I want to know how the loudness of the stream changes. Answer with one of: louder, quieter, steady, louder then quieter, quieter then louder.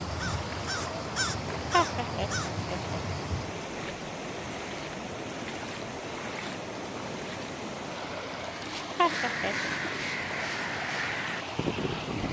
steady.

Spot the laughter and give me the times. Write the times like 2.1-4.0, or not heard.
1.7-3.0, 8.9-9.8.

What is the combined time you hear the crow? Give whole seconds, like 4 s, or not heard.
7 s.